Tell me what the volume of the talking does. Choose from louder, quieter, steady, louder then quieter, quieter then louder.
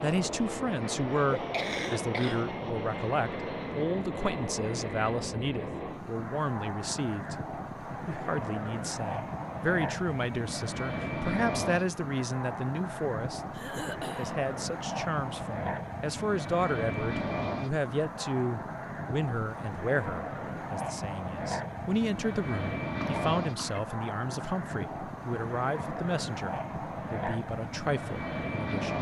steady.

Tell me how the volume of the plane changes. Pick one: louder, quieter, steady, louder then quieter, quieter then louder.
steady.